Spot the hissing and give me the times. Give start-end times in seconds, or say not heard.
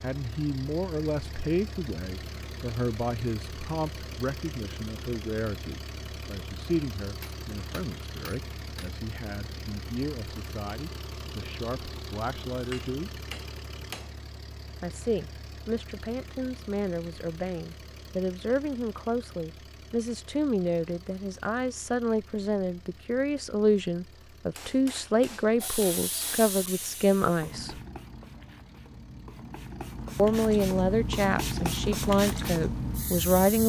25.6-33.6.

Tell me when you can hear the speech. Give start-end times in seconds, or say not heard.
0.0-13.2, 14.8-27.8, 30.1-33.6.